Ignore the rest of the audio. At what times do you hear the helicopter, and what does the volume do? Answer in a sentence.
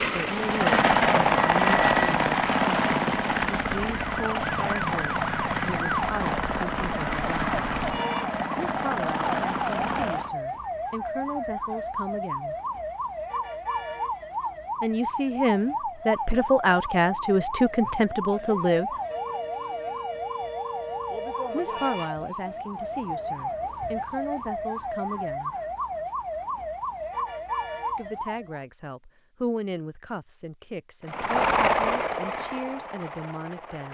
You can hear the helicopter from 0.0 to 10.3 s, getting quieter; and briefly from 31.0 to 33.8 s.